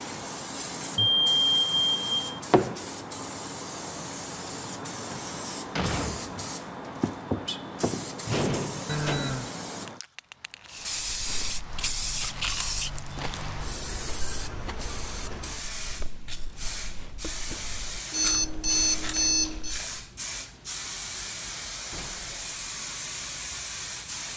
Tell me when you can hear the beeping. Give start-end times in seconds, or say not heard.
0.9-2.4, 8.8-9.5, 18.1-19.8.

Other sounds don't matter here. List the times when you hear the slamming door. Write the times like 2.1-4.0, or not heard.
5.1-6.5, 8.2-9.3, 21.9-22.4.